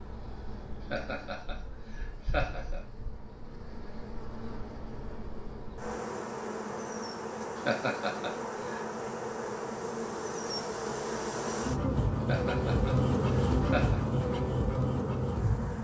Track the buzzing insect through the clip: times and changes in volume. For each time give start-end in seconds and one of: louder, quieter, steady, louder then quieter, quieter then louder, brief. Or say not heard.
0.0-15.7 louder.